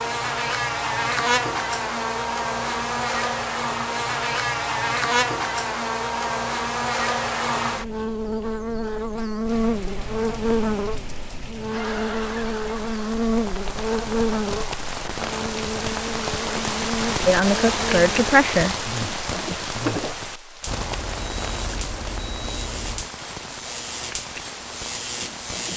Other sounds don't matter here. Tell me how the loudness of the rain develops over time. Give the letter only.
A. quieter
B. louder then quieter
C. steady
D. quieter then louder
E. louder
B.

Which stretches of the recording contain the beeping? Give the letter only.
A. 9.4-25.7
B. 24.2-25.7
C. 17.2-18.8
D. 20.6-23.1
D.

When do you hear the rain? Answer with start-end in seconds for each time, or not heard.
9.4-25.7.